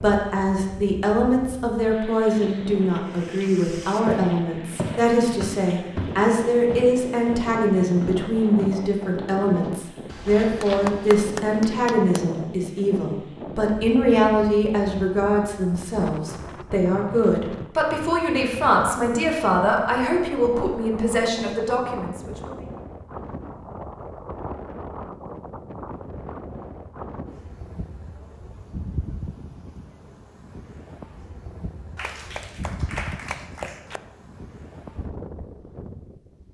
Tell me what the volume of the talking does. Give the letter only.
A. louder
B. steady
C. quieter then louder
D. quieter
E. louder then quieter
B.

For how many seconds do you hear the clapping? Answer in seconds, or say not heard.
4 s.